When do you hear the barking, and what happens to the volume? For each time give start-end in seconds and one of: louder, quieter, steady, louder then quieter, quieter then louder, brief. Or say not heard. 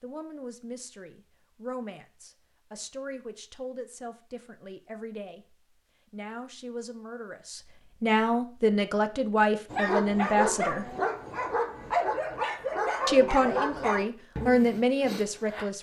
9.7-15.7 quieter.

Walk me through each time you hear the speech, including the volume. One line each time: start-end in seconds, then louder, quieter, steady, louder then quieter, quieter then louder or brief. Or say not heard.
0.0-10.9 louder
13.1-15.7 brief.